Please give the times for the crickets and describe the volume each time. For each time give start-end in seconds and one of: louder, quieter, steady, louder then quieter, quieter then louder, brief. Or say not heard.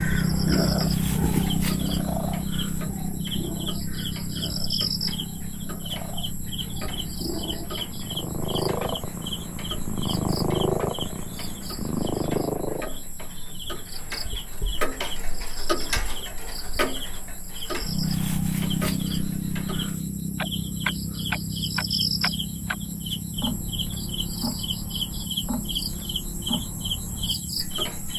0.0-28.1 quieter then louder.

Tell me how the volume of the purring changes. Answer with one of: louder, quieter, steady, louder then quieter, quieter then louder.
quieter then louder.